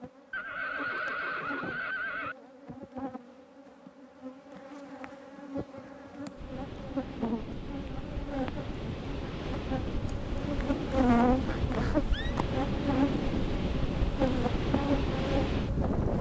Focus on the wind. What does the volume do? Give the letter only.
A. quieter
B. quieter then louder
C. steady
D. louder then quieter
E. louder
E.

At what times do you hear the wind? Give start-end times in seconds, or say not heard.
6.3-16.1.